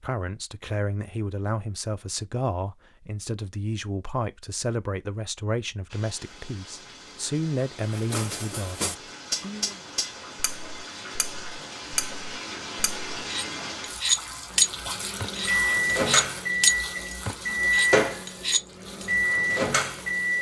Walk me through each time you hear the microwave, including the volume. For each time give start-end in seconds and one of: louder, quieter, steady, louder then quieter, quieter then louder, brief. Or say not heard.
14.5-20.3 steady.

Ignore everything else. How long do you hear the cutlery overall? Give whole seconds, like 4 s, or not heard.
11 s.